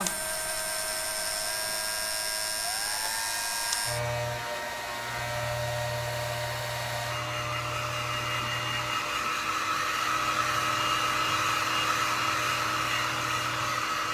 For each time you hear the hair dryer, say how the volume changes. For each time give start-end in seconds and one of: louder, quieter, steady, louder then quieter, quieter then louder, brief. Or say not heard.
0.0-14.0 louder.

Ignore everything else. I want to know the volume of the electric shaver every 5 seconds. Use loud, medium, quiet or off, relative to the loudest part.
loud, loud, medium.